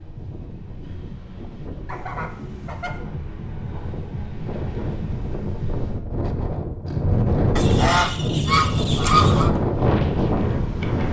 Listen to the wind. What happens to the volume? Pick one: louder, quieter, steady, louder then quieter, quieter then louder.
louder.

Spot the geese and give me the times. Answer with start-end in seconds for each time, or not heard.
1.9-3.0, 7.5-9.5.